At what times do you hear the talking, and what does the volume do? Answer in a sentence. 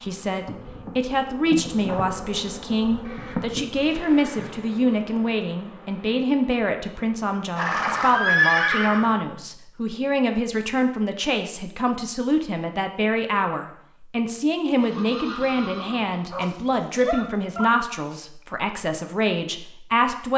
The talking can be heard from 0.0 to 20.3 s, at a steady volume.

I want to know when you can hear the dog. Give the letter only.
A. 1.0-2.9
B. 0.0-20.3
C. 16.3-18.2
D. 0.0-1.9
C.